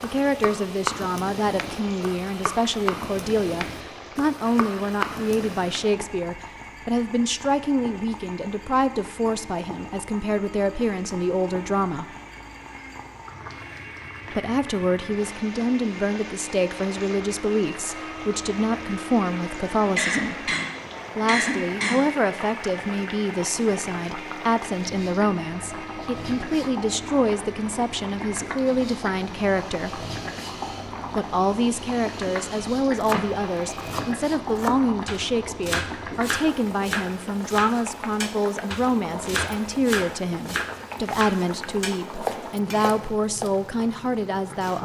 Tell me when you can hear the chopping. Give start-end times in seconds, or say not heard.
0.0-5.9, 33.0-43.5.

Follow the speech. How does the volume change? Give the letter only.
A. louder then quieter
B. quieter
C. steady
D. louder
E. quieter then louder
C.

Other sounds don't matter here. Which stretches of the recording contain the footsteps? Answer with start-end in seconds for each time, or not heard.
not heard.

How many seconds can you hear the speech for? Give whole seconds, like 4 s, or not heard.
41 s.